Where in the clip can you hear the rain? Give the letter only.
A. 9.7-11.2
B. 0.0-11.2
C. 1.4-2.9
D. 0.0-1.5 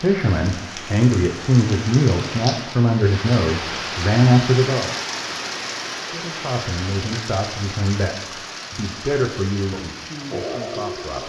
B.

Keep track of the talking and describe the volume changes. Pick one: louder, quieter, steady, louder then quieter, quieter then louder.
quieter.